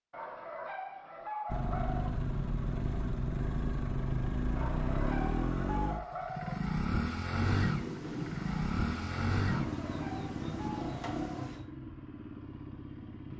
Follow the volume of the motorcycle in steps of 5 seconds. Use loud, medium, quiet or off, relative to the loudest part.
loud, loud, medium.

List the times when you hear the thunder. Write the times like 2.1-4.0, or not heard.
7.5-11.7.